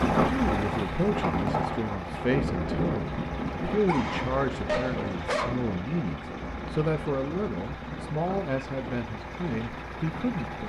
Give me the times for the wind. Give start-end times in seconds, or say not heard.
0.0-10.6.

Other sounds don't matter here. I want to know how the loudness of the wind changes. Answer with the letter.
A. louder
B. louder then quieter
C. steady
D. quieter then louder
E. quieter
E.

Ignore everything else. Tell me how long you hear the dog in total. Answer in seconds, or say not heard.
2 s.